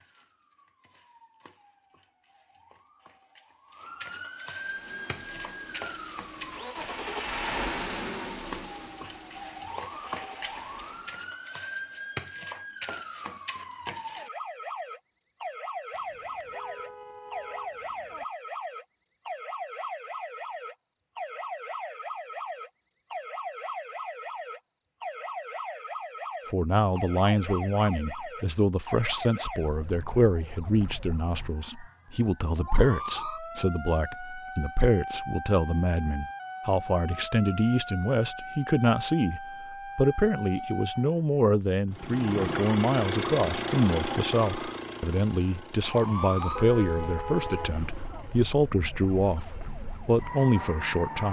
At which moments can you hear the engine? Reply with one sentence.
You can hear the engine from 4.5 to 11.4 s and from 41.9 to 51.2 s.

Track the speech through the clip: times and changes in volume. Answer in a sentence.
The speech can be heard from 26.5 to 51.2 s, at a steady volume.